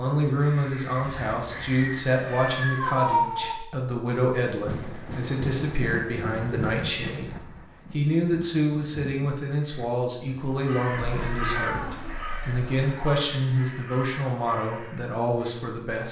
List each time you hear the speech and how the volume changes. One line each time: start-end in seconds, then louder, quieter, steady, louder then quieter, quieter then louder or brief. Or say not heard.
0.0-16.0 steady.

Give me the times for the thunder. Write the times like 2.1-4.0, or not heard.
4.7-9.2.